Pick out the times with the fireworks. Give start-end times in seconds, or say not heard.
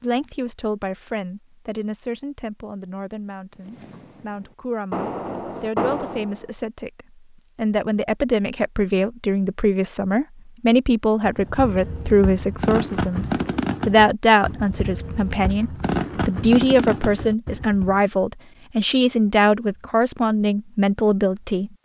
3.5-6.5, 11.2-18.0.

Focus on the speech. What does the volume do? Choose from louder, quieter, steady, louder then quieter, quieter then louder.
louder.